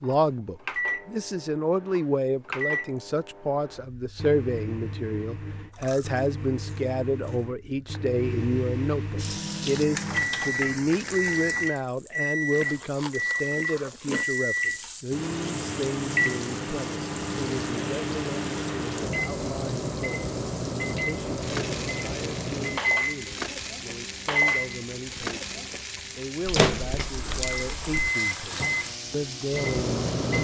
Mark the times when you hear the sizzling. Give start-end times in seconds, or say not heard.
9.2-30.3.